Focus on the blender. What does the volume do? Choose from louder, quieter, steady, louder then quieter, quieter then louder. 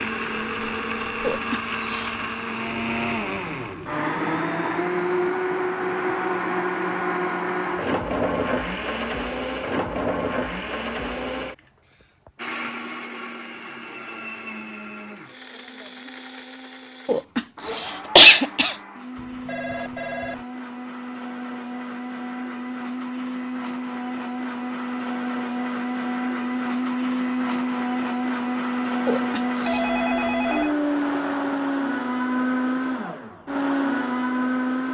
quieter then louder.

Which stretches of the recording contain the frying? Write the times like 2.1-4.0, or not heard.
not heard.